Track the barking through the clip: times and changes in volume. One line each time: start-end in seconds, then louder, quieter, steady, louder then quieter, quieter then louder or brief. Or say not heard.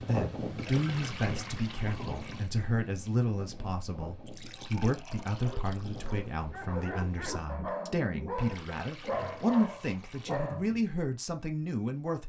5.3-10.8 louder.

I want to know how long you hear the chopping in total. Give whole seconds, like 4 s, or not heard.
not heard.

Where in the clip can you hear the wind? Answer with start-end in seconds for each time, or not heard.
0.0-7.5.